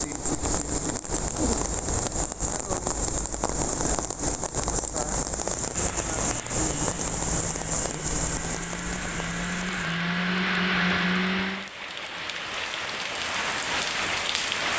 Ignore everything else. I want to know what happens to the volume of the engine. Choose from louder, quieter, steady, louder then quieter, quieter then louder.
louder.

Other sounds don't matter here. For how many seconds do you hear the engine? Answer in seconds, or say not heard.
6 s.